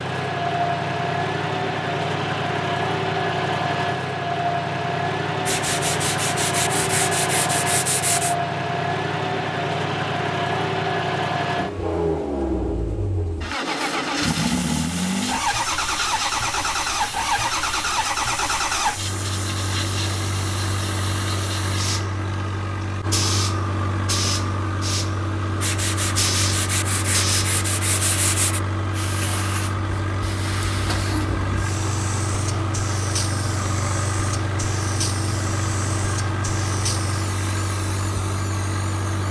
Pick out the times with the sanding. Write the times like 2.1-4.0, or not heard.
5.5-8.3, 25.6-28.6.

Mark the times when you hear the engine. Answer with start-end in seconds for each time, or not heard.
0.0-39.2.